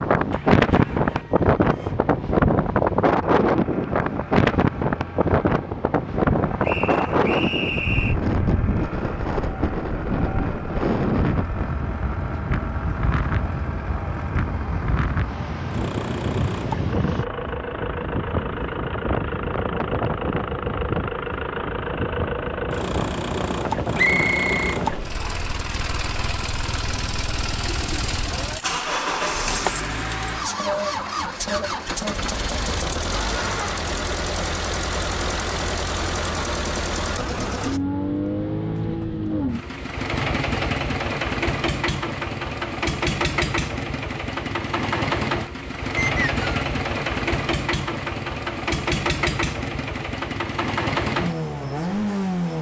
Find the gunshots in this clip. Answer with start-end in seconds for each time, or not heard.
not heard.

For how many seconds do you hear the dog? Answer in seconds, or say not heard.
not heard.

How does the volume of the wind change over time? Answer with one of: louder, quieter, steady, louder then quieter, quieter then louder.
quieter.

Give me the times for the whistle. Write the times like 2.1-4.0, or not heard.
6.6-8.2, 23.9-25.4, 46.0-46.5.